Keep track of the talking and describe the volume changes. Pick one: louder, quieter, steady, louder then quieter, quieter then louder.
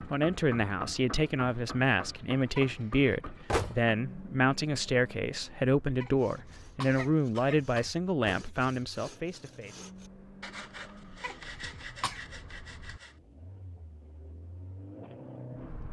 steady.